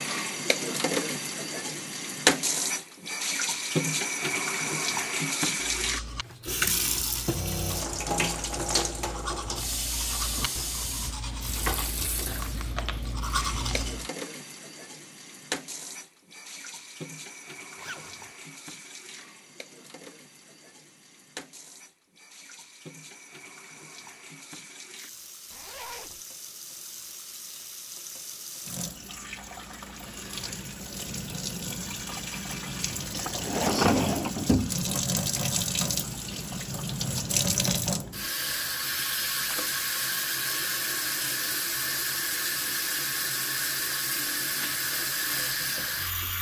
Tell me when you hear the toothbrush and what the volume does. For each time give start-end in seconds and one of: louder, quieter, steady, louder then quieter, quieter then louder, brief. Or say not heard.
5.7-14.1 louder.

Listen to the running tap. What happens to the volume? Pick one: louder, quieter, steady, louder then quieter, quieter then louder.
quieter then louder.